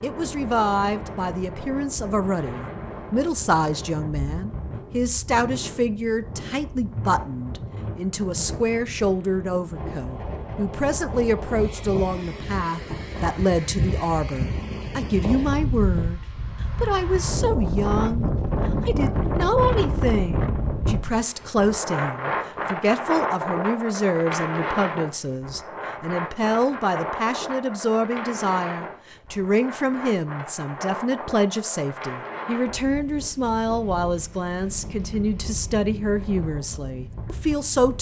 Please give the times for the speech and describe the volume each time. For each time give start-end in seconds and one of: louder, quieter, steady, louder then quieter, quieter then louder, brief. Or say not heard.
0.0-37.9 steady.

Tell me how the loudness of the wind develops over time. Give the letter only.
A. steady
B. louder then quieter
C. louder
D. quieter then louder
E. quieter
B.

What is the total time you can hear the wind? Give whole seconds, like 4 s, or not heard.
38 s.